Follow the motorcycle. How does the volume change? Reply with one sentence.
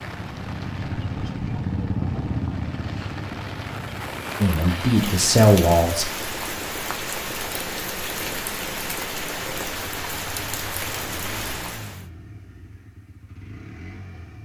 The loudness of the motorcycle goes down.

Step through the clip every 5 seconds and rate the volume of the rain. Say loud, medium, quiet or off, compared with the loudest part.
medium, loud, loud.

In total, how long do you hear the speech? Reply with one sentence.
You can hear the speech for 2 seconds altogether.